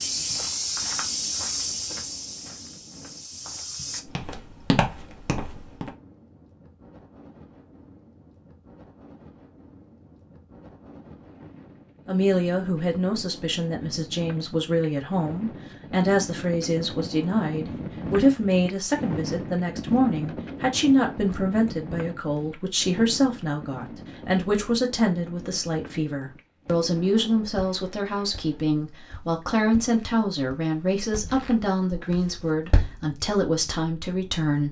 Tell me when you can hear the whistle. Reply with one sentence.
The whistle can't be heard in this clip.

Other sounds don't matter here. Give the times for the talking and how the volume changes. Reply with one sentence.
You can hear the talking from 12.1 to 34.6 s, at a steady volume.